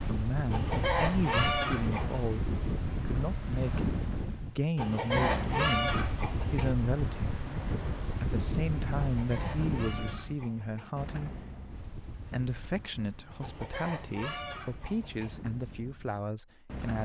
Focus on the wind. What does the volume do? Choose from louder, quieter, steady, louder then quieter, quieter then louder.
quieter.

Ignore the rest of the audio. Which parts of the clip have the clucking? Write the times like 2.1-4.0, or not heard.
0.5-2.3, 4.8-6.8, 9.0-10.9, 13.4-15.3.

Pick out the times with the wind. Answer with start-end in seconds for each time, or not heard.
0.0-16.9.